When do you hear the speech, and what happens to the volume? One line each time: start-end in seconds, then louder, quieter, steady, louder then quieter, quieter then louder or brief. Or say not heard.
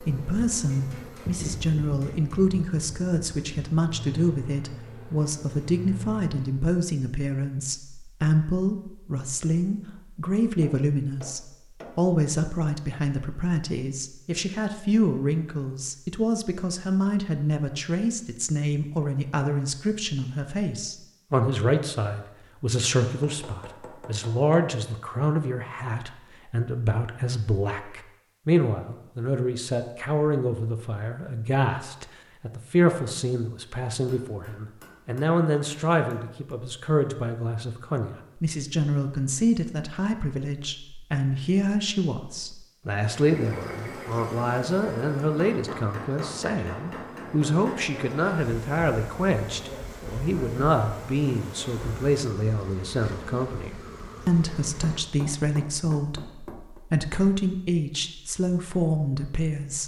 0.0-59.8 steady.